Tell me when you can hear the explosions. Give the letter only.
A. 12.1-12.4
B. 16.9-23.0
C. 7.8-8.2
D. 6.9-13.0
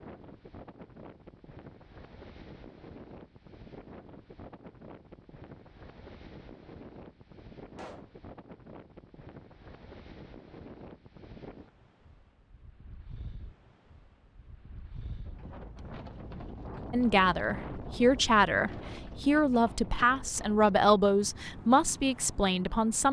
C.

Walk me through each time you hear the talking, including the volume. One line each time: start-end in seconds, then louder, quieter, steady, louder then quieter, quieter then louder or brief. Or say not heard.
16.9-23.0 steady.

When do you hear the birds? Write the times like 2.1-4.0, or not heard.
not heard.